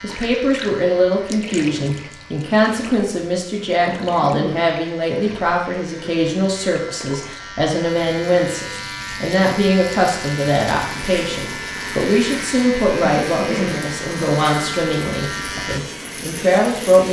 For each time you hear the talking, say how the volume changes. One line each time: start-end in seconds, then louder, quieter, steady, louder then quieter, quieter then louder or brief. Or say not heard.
0.0-17.0 steady.